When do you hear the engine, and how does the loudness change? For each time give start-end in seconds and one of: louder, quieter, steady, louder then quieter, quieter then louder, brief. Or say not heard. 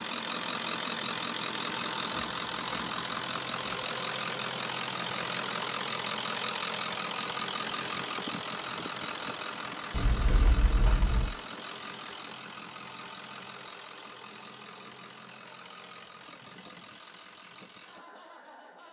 0.0-18.8 quieter.